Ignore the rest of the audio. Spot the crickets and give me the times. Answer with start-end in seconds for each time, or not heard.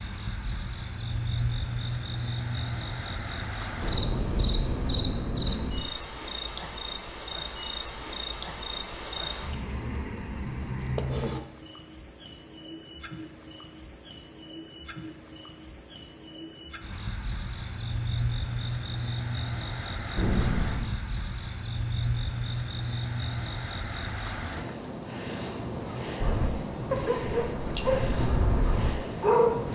0.0-29.6.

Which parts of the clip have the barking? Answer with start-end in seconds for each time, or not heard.
26.2-29.6.